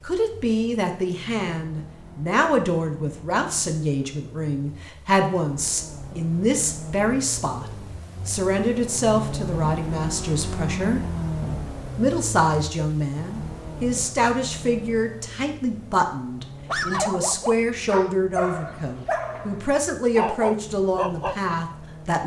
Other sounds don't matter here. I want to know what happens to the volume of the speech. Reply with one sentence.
The volume of the speech stays about the same.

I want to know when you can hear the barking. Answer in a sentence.
The barking can be heard from 16.6 to 21.4 s.